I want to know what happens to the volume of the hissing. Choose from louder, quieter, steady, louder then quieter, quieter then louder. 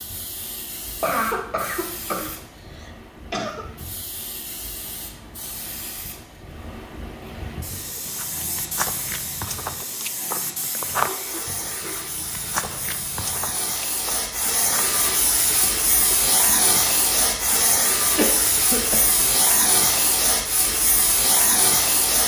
louder.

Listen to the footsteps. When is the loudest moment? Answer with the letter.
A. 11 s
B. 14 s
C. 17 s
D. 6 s
A.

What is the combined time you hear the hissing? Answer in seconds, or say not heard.
22 s.